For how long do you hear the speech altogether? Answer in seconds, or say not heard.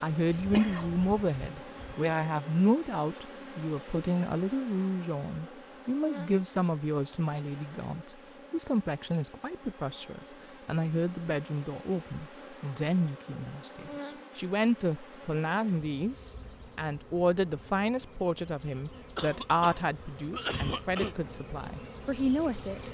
23 s.